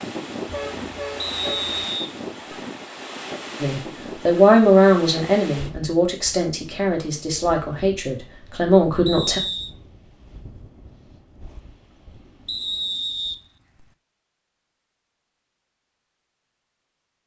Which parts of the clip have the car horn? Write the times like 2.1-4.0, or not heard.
0.5-1.8.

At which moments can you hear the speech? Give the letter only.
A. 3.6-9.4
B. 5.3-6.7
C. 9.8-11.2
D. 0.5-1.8
A.